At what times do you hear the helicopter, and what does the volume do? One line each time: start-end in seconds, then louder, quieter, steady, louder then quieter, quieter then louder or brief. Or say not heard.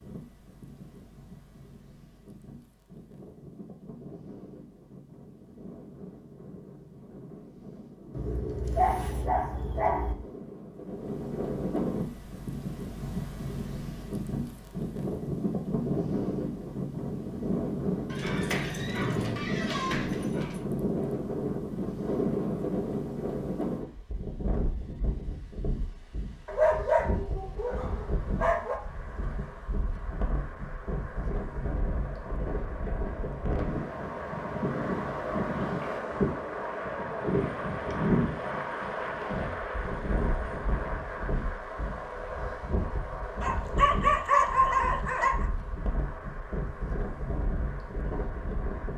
27.4-48.9 louder then quieter.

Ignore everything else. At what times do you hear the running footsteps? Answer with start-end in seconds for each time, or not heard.
not heard.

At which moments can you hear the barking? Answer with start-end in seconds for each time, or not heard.
8.1-10.2, 18.1-20.6, 26.4-28.8, 43.4-45.5.